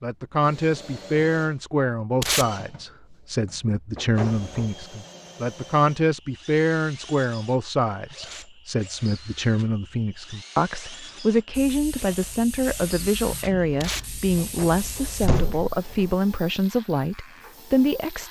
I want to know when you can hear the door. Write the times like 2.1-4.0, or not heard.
4.0-4.8, 14.3-16.1.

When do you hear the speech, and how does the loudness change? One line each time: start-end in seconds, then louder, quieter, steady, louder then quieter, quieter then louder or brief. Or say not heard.
0.0-18.2 steady.